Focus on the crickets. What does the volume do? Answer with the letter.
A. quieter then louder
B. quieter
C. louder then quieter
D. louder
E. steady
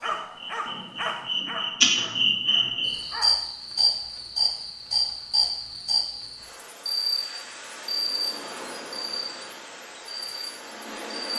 B.